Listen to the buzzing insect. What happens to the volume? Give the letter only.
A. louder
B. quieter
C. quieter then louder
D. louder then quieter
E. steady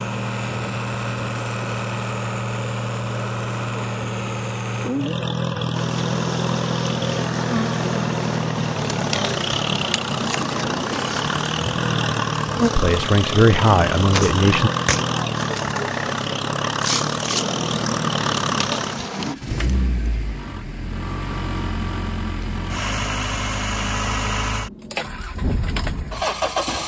E.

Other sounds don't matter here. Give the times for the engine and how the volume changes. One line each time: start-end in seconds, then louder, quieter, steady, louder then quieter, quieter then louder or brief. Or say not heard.
0.0-26.8 steady.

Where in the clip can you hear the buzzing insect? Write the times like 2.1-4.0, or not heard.
5.7-19.4.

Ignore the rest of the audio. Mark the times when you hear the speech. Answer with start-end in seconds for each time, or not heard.
12.8-14.7.